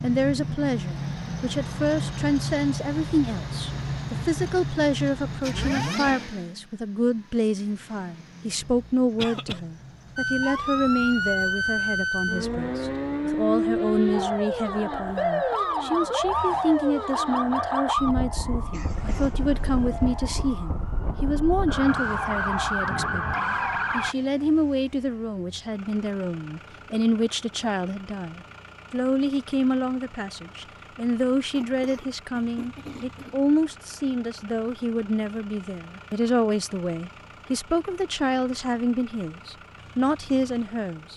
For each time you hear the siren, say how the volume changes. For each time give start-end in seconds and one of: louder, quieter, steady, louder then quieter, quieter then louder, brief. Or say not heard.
10.2-24.1 quieter then louder.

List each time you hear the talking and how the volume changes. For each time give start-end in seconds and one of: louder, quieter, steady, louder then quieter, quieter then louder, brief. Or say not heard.
0.0-41.1 steady.